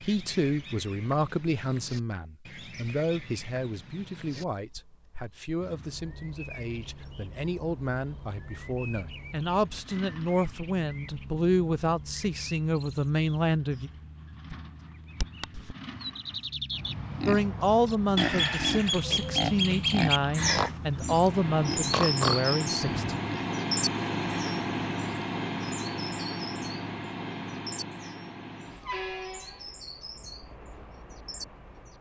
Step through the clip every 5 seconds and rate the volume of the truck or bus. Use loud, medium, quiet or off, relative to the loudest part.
off, quiet, quiet, quiet, loud, loud, quiet.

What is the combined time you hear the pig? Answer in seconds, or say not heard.
7 s.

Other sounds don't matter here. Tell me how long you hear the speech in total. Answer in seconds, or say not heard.
20 s.